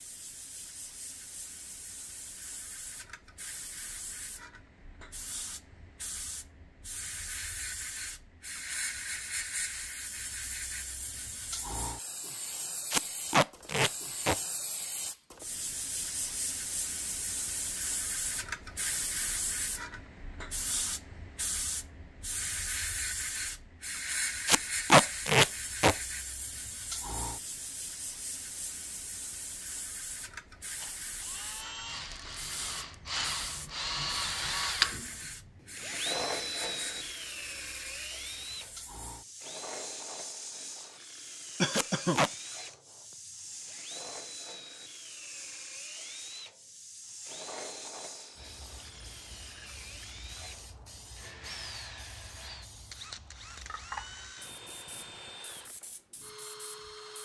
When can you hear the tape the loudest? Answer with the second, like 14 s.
25 s.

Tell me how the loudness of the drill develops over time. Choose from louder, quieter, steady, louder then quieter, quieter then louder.
quieter.